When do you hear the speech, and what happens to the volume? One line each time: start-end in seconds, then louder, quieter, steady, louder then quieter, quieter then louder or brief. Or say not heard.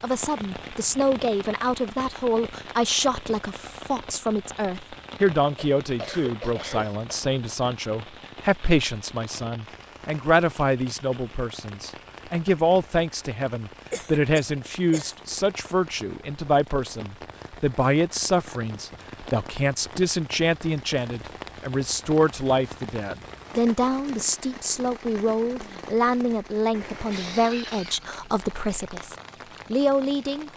0.0-30.5 steady.